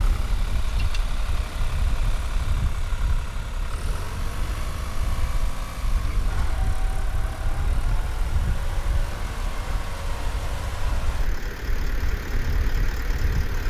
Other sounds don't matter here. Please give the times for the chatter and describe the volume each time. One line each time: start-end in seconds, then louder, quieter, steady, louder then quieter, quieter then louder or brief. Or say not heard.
not heard.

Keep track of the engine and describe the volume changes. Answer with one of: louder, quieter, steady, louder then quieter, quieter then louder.
steady.